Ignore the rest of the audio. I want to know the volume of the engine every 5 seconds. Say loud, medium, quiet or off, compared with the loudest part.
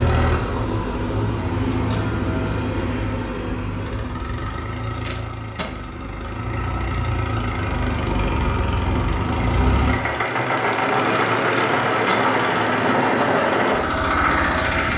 medium, medium, loud.